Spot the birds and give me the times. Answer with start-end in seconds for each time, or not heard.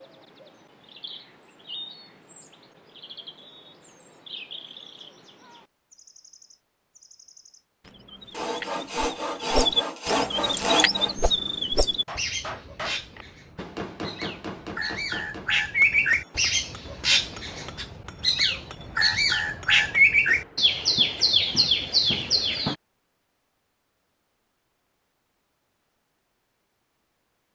0.0-22.8.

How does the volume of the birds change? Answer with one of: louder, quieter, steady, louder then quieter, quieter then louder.
louder.